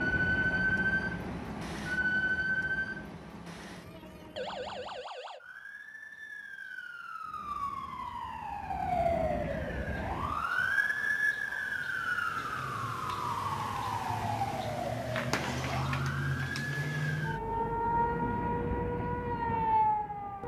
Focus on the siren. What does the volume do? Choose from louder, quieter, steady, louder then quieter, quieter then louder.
quieter then louder.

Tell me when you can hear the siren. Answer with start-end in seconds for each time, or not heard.
0.0-20.4.